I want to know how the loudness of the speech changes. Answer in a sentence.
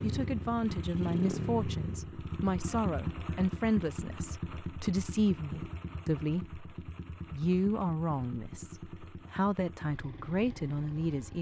The loudness of the speech stays about the same.